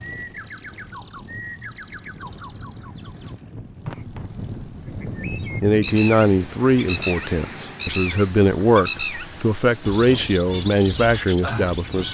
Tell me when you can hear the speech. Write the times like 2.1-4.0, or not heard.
5.6-12.0.